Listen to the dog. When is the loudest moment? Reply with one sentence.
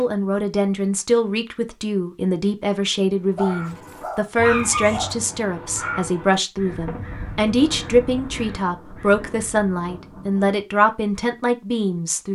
The volume of the dog peaks at 5 seconds.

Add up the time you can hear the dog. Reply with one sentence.
You can hear the dog for 2 seconds altogether.